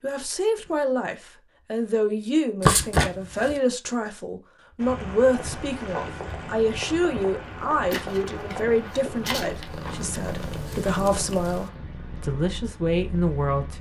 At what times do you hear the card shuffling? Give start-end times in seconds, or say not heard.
2.6-3.5, 7.9-9.7.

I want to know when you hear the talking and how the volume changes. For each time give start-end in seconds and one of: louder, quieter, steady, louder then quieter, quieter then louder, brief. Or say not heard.
0.0-13.7 steady.